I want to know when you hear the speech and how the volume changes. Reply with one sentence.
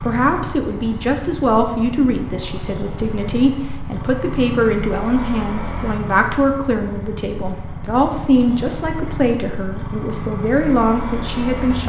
You can hear the speech from 0.0 to 11.8 s, at a steady volume.